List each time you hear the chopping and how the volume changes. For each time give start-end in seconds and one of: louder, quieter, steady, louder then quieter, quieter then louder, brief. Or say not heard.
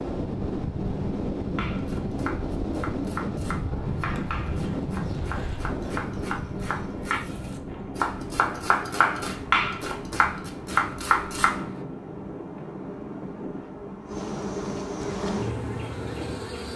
1.6-11.8 louder.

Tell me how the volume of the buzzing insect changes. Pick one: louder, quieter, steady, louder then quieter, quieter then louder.
louder.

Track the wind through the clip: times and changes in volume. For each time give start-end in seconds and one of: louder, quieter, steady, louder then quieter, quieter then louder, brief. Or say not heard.
0.0-16.5 quieter.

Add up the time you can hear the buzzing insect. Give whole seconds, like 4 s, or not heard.
13 s.